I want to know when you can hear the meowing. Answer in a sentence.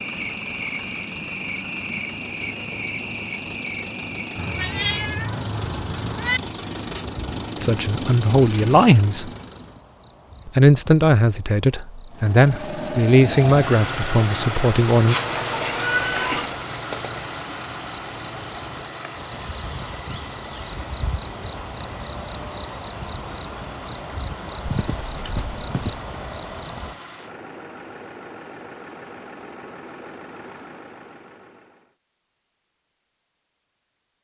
The meowing can be heard from 4.3 to 6.4 s, from 15.1 to 16.6 s and from 24.6 to 26.1 s.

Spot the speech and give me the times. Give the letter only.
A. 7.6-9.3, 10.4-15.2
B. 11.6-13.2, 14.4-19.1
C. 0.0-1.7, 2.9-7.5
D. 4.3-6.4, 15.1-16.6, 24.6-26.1
A.